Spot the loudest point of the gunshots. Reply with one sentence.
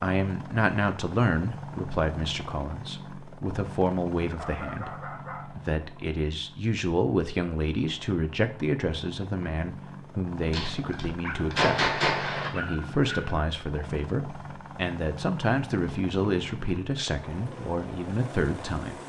The volume of the gunshots peaks at 12 seconds.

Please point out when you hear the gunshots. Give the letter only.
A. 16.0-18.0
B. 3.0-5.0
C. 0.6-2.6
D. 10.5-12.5
D.